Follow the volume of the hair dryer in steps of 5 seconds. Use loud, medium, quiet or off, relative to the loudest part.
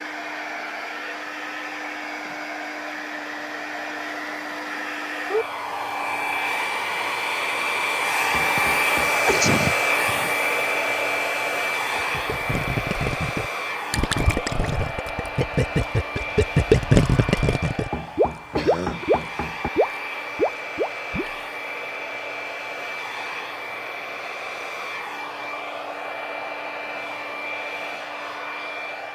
medium, loud, loud, medium, medium, medium.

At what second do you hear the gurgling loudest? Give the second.
17 s.